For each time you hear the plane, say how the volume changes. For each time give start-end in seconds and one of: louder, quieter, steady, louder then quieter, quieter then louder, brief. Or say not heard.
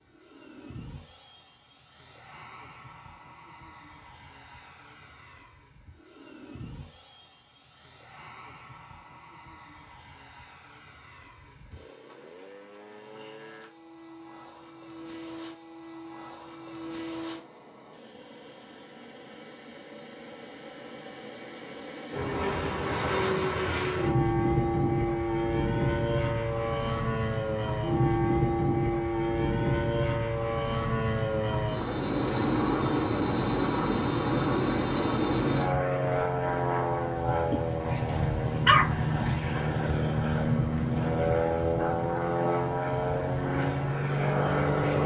0.0-45.0 louder.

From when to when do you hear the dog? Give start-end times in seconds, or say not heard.
37.9-39.6.